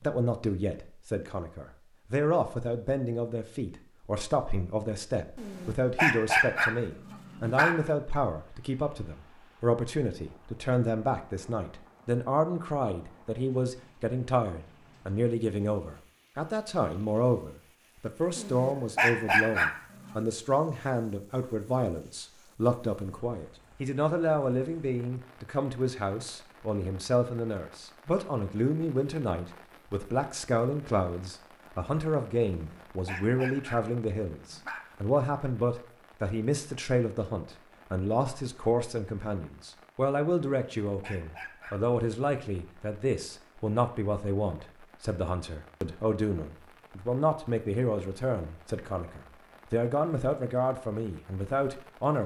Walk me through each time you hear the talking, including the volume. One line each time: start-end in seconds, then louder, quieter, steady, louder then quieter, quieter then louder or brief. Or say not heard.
0.0-52.2 steady.